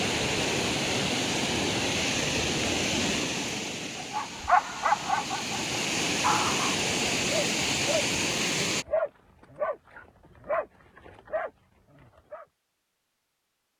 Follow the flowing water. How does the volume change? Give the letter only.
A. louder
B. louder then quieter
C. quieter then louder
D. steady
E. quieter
C.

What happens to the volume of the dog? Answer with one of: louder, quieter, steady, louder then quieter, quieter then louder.
quieter.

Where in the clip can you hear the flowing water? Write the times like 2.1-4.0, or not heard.
0.0-8.8.